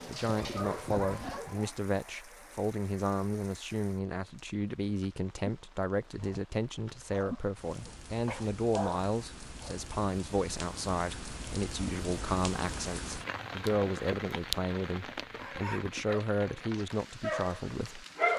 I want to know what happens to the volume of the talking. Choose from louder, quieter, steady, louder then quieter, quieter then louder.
steady.